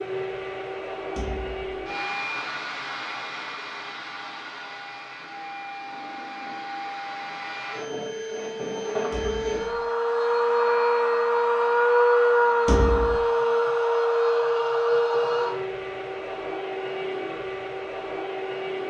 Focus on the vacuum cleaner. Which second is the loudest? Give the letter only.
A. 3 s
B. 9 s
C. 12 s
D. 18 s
C.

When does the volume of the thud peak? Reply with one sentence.
The loudest moment of the thud is at 13 seconds.